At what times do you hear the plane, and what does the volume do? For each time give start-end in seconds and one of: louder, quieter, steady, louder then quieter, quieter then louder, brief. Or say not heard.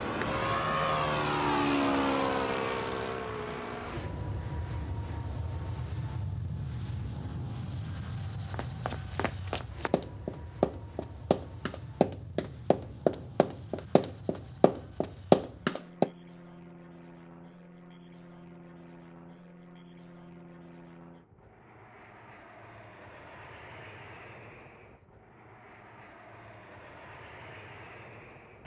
0.0-28.6 quieter.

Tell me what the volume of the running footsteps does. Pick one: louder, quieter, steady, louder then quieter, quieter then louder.
louder.